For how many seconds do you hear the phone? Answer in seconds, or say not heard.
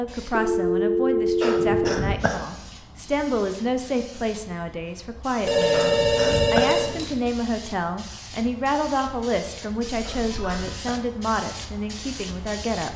4 s.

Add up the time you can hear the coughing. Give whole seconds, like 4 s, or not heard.
3 s.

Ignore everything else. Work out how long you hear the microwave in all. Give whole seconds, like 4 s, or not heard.
not heard.